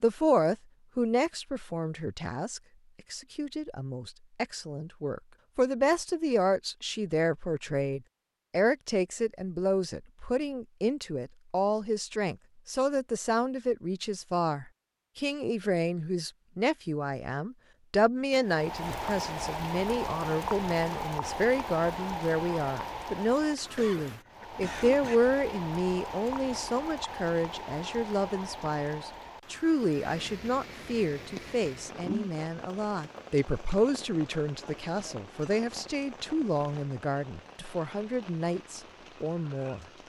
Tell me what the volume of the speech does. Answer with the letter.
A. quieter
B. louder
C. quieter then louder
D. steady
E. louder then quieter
D.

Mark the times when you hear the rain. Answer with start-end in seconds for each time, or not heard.
18.3-40.0.